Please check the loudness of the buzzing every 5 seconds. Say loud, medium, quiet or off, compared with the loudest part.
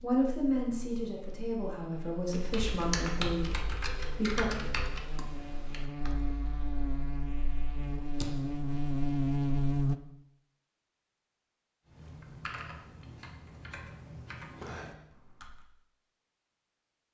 quiet, loud, off, off.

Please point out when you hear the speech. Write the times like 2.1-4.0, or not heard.
0.0-4.6.